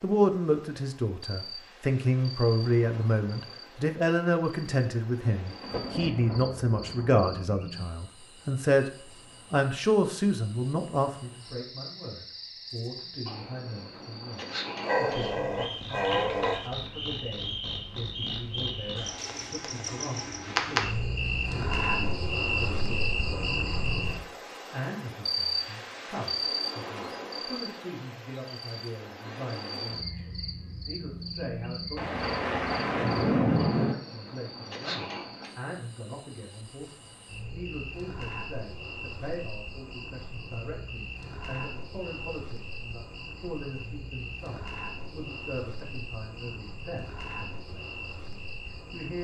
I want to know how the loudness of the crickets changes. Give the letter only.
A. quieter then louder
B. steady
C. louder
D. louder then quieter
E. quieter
D.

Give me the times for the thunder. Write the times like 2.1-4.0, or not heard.
5.6-7.2, 31.9-34.0.